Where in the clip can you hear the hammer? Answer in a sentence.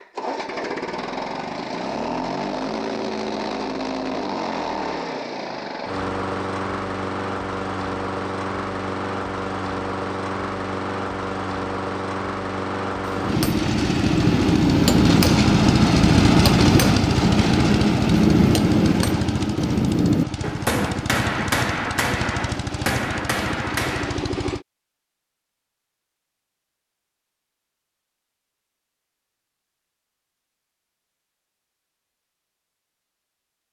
You can hear the hammer from 13.1 to 24.2 s.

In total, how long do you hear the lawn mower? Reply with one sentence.
The lawn mower can be heard for 25 seconds in total.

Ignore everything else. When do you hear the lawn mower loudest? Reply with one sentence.
The loudest moment of the lawn mower is at 16 seconds.